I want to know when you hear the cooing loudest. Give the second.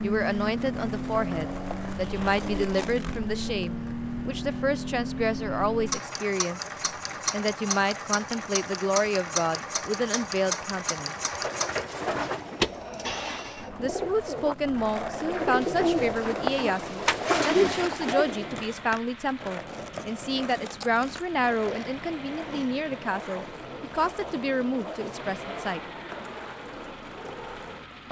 17 s.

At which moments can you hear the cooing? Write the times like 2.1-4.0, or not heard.
11.2-18.6.